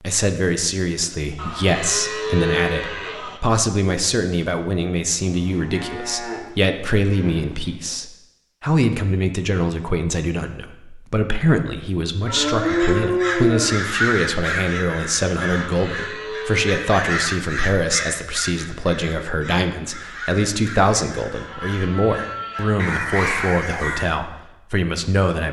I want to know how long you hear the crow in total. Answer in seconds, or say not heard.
12 s.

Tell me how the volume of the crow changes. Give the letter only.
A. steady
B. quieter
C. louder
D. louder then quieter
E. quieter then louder
E.